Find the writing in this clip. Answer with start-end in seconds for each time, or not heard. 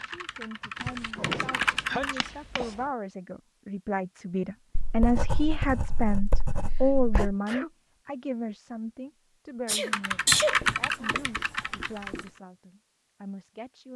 0.8-2.7, 4.8-7.3, 10.2-12.2.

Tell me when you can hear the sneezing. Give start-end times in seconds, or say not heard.
1.1-2.2, 6.6-7.7, 9.7-11.1.